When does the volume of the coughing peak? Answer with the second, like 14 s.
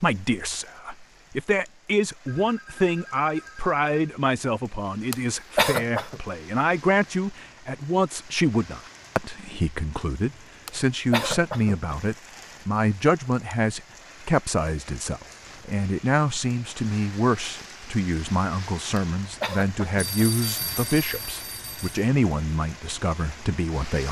6 s.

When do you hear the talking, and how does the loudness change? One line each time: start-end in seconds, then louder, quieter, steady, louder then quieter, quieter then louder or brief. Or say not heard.
0.0-24.0 steady.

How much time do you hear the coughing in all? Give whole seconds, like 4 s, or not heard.
4 s.